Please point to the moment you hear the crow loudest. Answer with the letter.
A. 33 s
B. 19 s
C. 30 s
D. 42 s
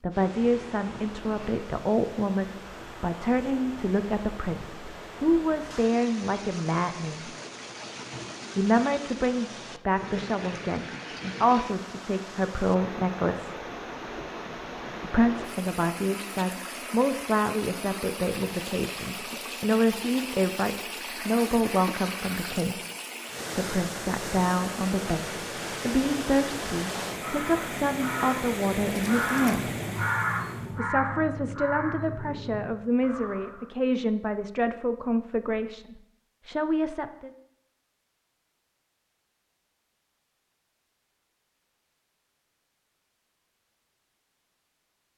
C.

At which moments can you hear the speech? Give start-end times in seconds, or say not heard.
0.0-7.3, 8.6-13.6, 15.0-22.8, 23.6-25.2, 25.9-29.6, 30.8-37.3.